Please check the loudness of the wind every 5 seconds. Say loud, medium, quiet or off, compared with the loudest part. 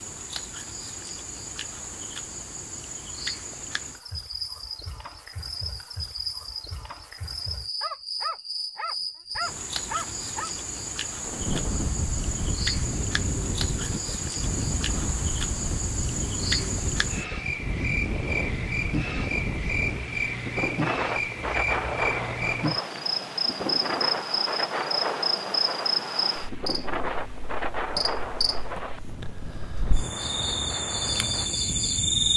off, off, loud, loud, loud, loud, medium.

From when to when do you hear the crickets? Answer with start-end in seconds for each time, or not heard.
0.0-32.3.